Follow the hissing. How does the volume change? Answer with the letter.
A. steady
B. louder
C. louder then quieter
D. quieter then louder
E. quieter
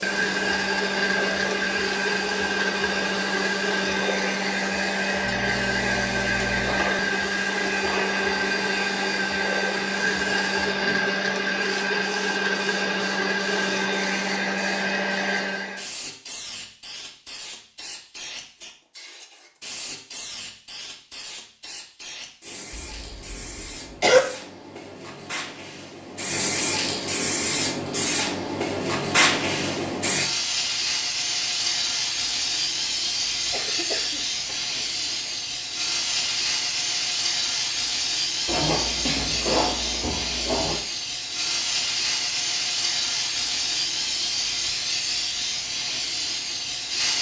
B.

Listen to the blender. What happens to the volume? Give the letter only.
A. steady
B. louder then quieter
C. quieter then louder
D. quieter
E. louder
A.